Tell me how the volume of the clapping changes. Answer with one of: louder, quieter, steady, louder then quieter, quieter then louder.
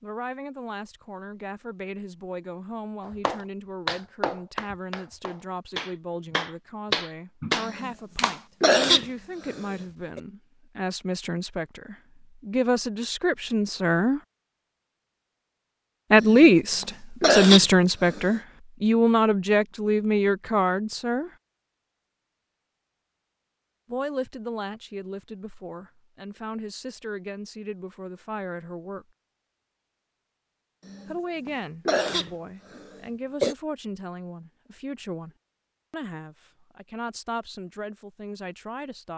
quieter then louder.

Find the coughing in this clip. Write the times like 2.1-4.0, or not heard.
7.6-10.2, 16.2-18.4, 30.9-33.5.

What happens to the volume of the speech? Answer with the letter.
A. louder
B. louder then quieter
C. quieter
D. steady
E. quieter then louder
B.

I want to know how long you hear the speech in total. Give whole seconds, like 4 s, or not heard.
32 s.